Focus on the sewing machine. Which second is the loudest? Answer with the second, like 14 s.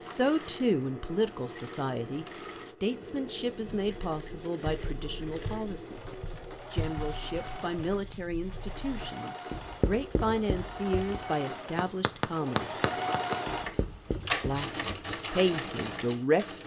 13 s.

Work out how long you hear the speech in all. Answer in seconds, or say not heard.
15 s.